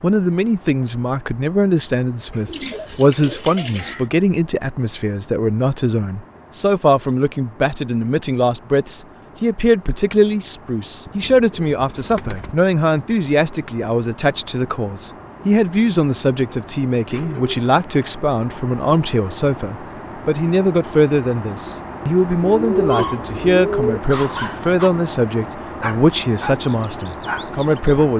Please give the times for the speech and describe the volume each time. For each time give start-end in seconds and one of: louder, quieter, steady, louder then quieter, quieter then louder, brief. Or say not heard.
0.0-28.1 steady.